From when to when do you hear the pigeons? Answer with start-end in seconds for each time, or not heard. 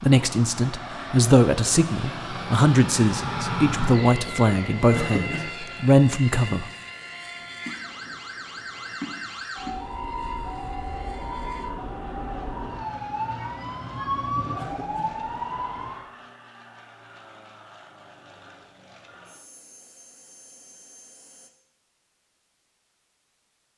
not heard.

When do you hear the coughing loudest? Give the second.
5 s.